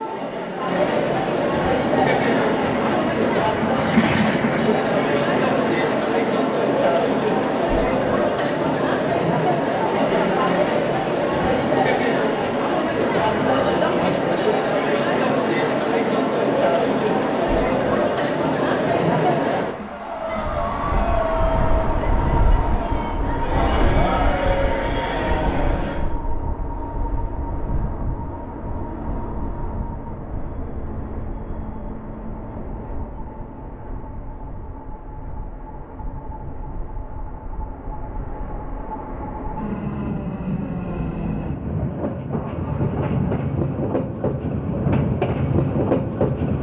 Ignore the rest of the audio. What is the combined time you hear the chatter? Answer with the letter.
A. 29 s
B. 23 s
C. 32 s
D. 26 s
D.